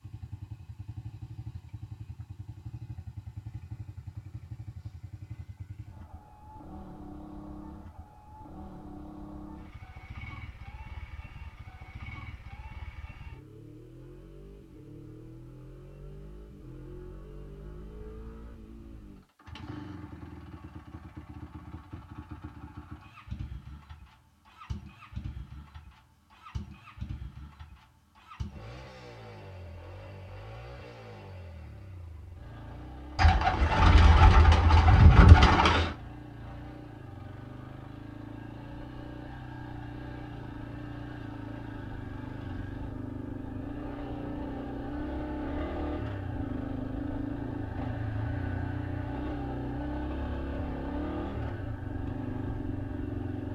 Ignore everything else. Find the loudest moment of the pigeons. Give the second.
35 s.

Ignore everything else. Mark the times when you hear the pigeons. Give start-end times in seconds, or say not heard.
33.1-36.0.